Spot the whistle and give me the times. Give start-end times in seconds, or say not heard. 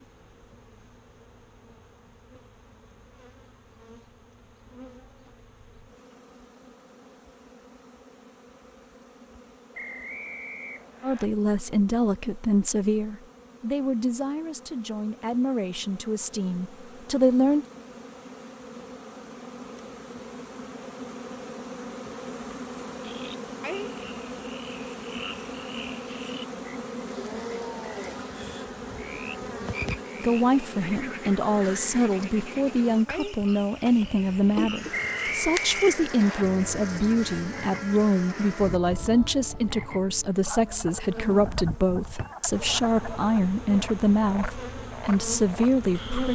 9.7-11.2, 34.9-36.5.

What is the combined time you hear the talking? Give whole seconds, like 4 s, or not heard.
23 s.